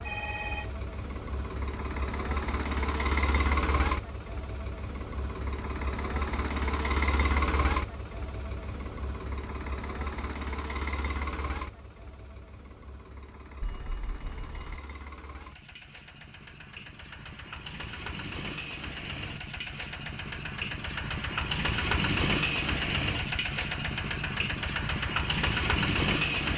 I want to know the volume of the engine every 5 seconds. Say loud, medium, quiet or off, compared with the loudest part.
medium, medium, quiet, quiet, loud, loud.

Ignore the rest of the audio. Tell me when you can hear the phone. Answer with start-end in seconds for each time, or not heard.
0.0-0.7, 13.6-14.8.